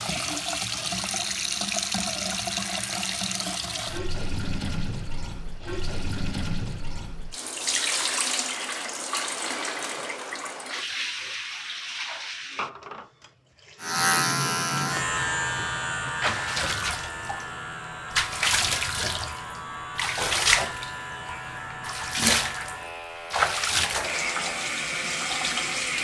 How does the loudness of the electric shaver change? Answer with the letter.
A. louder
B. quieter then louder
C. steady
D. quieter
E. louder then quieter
D.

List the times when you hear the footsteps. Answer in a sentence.
You can't hear the footsteps here.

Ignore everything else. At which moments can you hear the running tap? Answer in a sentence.
You can hear the running tap from 0.0 to 25.9 s.